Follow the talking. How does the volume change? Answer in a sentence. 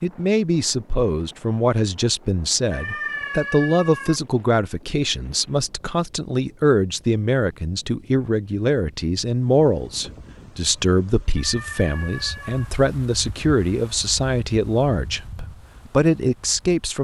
The loudness of the talking stays about the same.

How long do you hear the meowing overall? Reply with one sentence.
You can hear the meowing for 3 seconds altogether.